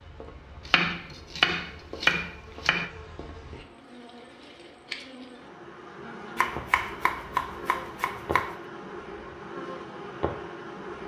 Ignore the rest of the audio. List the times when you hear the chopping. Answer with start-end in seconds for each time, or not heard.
0.7-2.9, 6.3-8.6.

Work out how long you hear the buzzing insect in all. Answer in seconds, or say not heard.
11 s.